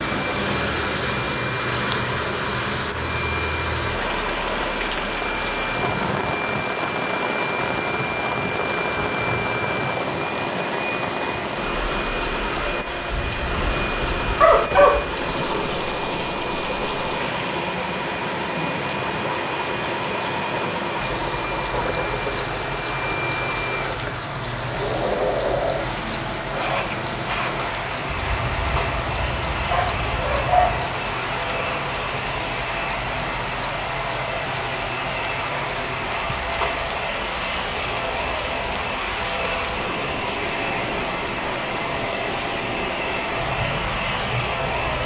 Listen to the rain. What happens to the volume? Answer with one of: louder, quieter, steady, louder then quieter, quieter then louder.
quieter.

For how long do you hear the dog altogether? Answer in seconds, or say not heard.
5 s.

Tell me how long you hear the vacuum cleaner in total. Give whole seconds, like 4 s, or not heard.
45 s.